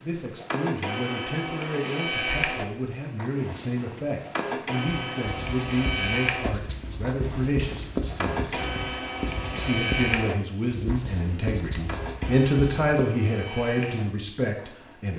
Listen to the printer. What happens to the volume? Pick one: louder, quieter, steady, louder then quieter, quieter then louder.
quieter.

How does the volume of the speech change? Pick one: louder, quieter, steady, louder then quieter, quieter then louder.
louder.